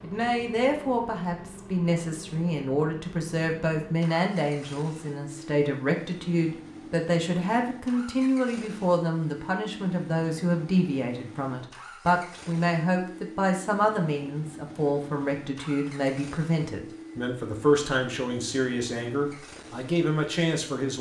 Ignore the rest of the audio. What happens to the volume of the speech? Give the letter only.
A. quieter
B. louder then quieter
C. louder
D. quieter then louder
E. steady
E.